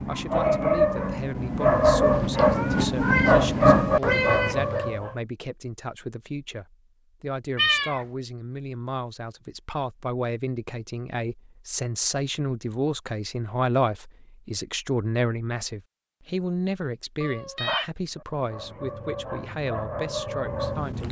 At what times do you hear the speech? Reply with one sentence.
You can hear the speech from 0.1 to 21.0 s.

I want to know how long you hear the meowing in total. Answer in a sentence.
You can hear the meowing for 4 seconds altogether.